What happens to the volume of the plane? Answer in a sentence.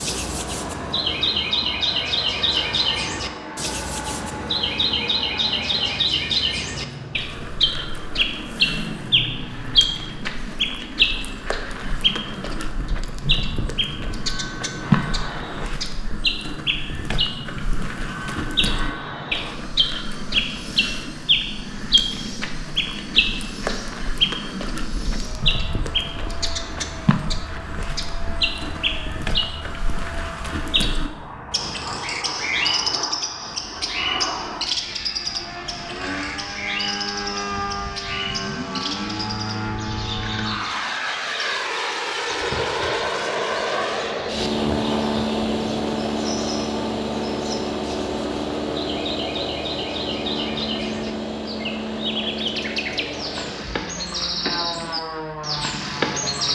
The volume of the plane goes up.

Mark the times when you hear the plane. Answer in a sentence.
You can hear the plane from 0.0 to 56.5 s.